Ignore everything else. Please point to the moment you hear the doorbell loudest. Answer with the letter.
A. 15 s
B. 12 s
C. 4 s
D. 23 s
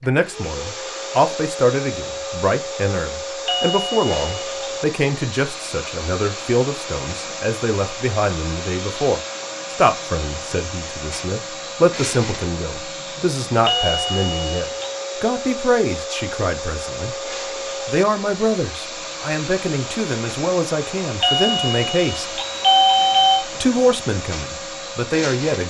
D.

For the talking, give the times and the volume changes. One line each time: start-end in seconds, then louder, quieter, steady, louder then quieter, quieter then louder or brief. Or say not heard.
0.0-22.4 steady
23.4-25.6 brief.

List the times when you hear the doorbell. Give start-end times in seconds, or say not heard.
3.5-4.7, 13.6-14.9, 21.2-23.4.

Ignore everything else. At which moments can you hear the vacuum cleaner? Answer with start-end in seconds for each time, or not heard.
0.0-25.6.